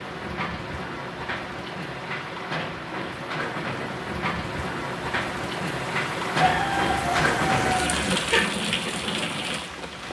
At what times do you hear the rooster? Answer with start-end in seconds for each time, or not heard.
6.4-8.4.